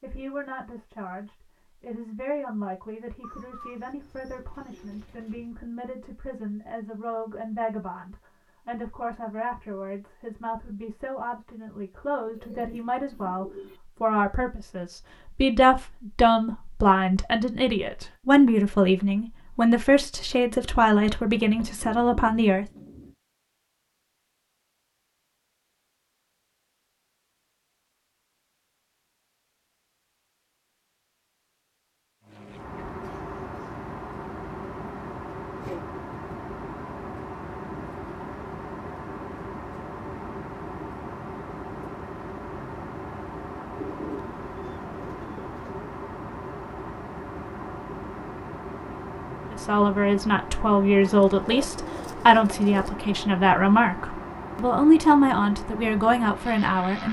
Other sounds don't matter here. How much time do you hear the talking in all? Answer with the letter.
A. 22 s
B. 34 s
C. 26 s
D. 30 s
D.